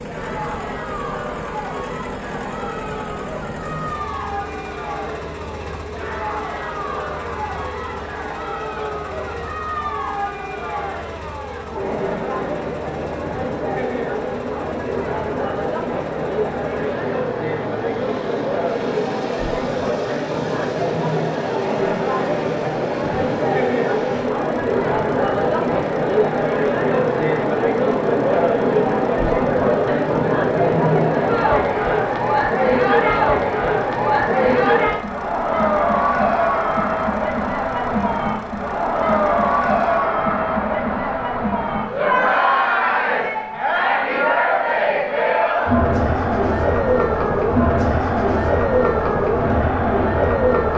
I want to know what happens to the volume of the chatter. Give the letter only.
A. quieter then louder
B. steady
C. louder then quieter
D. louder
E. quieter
D.